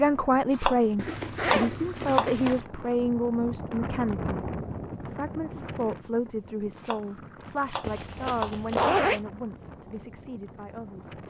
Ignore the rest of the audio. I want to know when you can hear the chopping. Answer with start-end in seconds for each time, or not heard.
0.5-2.4, 6.8-8.6.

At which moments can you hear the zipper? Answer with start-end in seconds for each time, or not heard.
0.9-2.6, 7.8-9.2.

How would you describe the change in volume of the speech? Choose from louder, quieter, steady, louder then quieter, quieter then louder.
quieter.